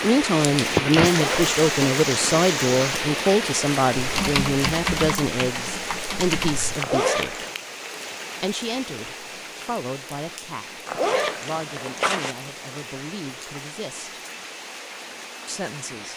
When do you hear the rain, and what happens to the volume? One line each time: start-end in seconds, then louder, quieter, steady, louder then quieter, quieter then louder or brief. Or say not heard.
0.0-16.1 quieter.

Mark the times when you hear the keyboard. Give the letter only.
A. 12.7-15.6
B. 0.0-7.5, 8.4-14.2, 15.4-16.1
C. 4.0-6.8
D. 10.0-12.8
C.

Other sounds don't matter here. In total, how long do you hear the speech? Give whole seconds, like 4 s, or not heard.
14 s.